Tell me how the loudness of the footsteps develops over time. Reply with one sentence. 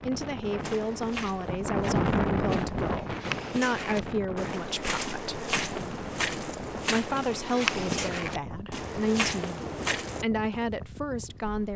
The volume of the footsteps goes up.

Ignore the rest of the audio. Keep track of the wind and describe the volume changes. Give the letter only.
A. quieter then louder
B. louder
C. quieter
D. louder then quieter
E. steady
C.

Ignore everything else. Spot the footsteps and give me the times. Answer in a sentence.
You can hear the footsteps from 0.6 to 10.2 s.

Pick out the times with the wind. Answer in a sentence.
The wind can be heard from 0.0 to 11.7 s.